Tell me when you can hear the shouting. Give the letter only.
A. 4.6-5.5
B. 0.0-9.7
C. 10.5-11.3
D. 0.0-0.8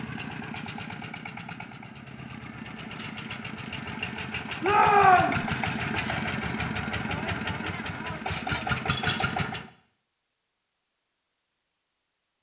A.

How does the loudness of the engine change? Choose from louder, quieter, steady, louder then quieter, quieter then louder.
louder.